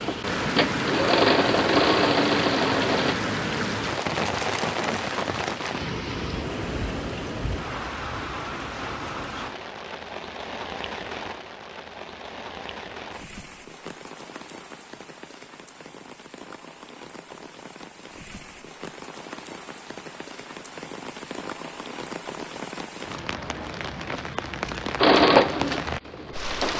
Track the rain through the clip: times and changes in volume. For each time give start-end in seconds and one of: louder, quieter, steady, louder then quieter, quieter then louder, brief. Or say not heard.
0.0-26.7 quieter then louder.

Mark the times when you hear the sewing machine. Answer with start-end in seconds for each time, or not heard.
0.0-3.1, 24.9-26.7.